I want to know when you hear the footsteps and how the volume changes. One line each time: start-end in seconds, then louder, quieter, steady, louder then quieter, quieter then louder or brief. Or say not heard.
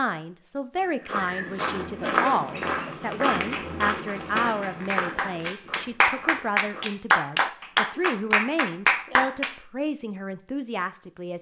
0.8-6.8 quieter.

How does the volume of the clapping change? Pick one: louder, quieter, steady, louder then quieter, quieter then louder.
louder.